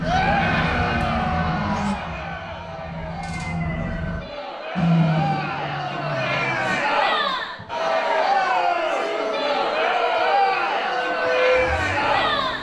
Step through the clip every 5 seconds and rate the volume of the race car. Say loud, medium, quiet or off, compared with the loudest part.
loud, loud, off.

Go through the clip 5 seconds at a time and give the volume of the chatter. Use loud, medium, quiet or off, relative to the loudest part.
medium, loud, loud.